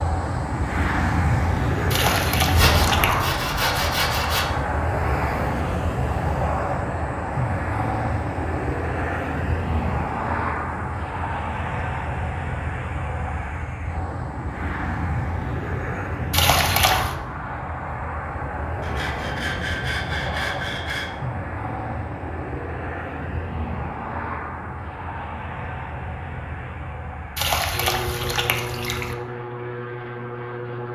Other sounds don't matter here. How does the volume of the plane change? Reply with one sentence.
The loudness of the plane goes down.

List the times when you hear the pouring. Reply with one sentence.
The pouring can be heard from 1.9 to 3.3 s, from 16.3 to 17.1 s and from 27.4 to 29.1 s.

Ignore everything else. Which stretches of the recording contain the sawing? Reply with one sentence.
You can hear the sawing from 2.5 to 4.5 s and from 18.8 to 21.1 s.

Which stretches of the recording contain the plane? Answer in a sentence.
You can hear the plane from 0.0 to 30.9 s.